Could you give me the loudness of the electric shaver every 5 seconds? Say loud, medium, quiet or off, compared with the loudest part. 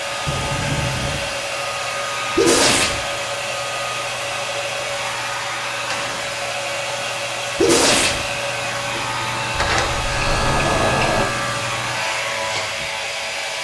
medium, medium, loud.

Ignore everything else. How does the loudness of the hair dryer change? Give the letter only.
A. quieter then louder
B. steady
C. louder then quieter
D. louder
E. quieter
B.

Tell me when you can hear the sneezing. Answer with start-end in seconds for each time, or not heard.
2.4-3.0, 7.5-8.2.